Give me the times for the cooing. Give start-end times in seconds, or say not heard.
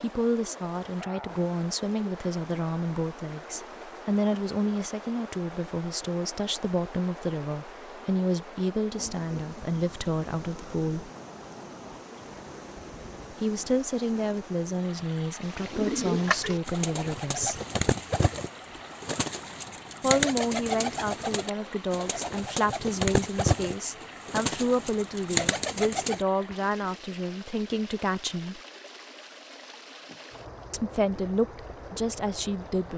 15.4-26.2.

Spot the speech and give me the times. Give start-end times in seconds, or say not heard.
0.0-11.1, 13.3-17.6, 20.0-28.6, 30.7-32.9.